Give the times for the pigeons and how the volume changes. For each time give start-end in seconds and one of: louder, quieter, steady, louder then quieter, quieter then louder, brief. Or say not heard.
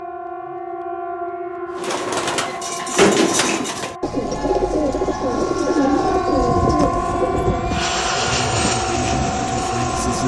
1.8-7.8 steady.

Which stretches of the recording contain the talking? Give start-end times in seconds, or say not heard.
8.2-10.2.